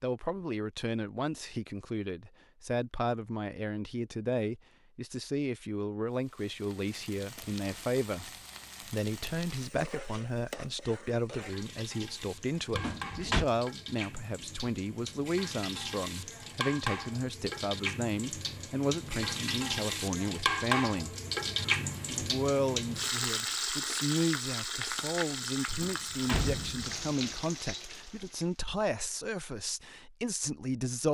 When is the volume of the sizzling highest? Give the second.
21 s.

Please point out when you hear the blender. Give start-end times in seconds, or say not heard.
not heard.